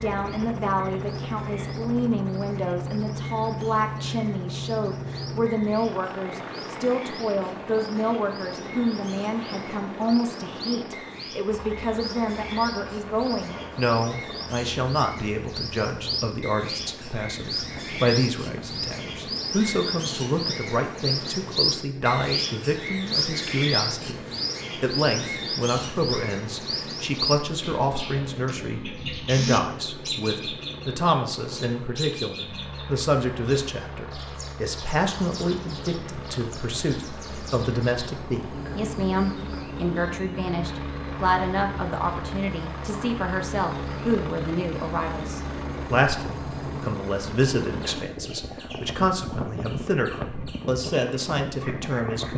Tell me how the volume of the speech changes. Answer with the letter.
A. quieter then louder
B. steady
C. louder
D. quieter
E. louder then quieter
B.